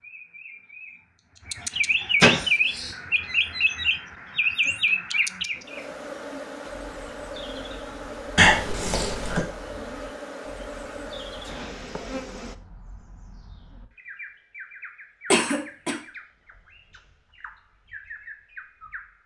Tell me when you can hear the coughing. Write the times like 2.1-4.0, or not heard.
2.2-2.9, 8.3-9.4, 15.3-15.9.